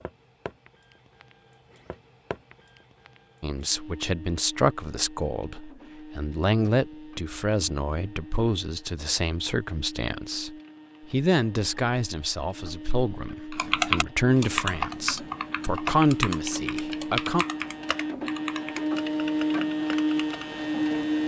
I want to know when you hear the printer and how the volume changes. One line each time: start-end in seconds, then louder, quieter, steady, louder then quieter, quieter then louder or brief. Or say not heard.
0.0-21.2 louder.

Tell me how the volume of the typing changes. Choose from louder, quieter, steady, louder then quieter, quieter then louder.
quieter.